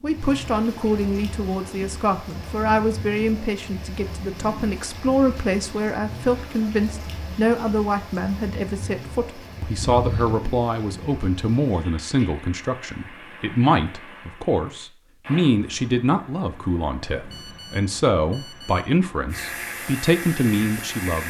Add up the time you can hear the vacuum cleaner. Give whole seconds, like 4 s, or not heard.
2 s.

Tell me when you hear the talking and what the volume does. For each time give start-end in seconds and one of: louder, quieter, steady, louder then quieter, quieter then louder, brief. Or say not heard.
0.0-21.2 steady.